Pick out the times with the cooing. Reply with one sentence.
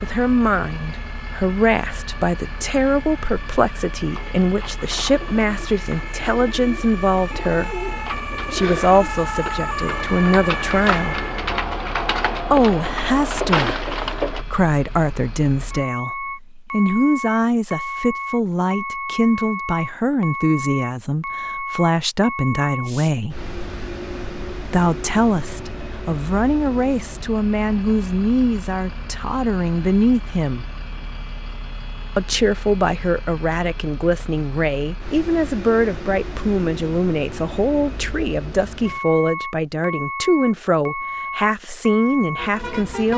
You can hear the cooing from 4.0 to 14.4 s.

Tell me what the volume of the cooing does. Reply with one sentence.
The volume of the cooing goes up.